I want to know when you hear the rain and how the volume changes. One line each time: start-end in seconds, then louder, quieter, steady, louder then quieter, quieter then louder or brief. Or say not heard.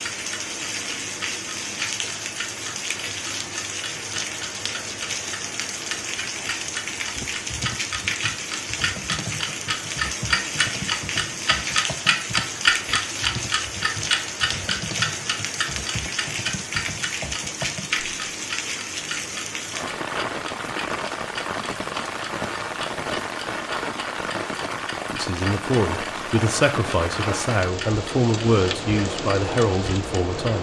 0.0-30.5 steady.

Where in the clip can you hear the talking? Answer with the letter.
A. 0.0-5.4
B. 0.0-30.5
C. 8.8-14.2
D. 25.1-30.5
D.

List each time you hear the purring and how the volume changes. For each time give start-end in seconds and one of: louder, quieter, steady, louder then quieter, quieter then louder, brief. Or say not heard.
not heard.